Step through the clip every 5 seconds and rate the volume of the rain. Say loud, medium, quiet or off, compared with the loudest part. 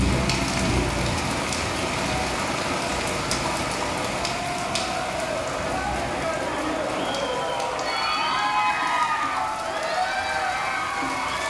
loud, medium, medium.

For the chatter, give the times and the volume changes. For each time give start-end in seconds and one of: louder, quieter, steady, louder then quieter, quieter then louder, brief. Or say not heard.
0.2-11.4 louder.